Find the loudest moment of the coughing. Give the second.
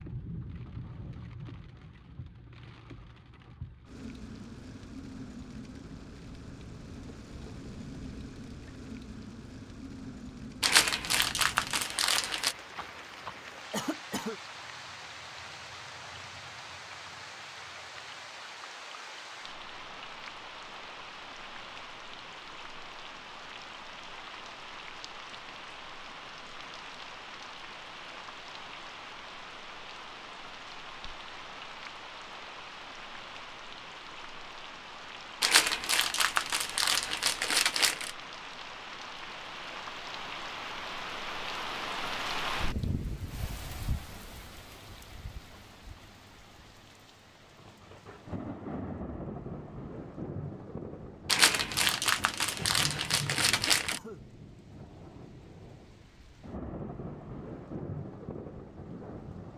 14 s.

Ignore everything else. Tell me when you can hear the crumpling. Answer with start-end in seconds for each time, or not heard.
10.6-12.6, 35.4-38.1, 51.2-54.0.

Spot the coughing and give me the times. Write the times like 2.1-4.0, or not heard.
13.7-14.4, 53.5-54.2.